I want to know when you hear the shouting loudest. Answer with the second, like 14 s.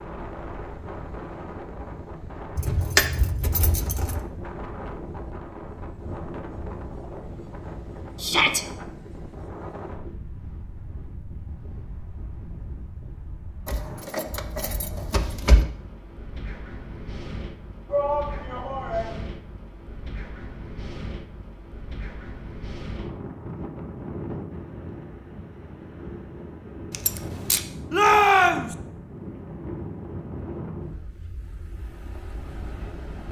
28 s.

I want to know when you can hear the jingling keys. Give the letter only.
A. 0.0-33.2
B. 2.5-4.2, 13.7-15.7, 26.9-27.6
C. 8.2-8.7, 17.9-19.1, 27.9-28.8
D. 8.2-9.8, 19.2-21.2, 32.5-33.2
B.